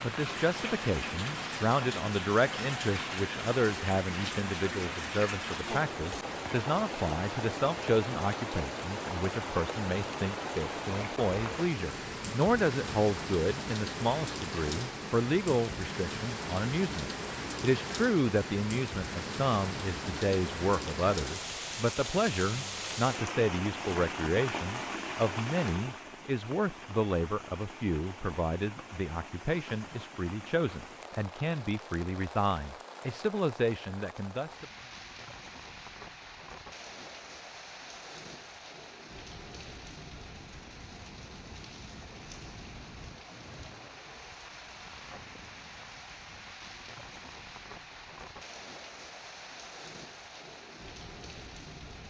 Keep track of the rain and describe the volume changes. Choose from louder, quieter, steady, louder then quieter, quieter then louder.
quieter.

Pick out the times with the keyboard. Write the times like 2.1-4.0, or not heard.
not heard.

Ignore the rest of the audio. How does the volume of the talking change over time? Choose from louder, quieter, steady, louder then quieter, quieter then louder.
steady.